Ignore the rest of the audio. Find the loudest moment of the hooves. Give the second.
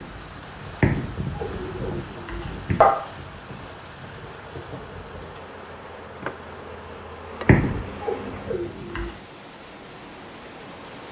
1 s.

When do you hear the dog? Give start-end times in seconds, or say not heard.
0.8-2.9, 7.5-9.1.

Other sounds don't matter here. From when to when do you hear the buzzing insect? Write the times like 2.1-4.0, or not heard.
4.2-8.6.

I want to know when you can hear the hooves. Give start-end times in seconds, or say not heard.
0.0-5.3.